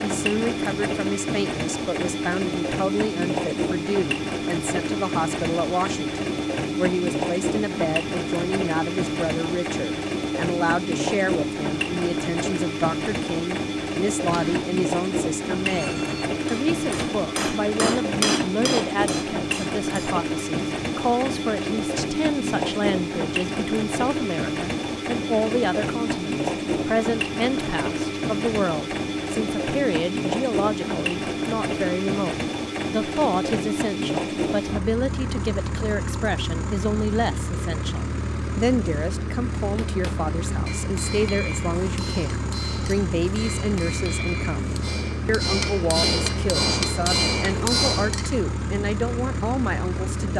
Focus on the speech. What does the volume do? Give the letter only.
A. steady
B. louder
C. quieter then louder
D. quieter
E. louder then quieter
A.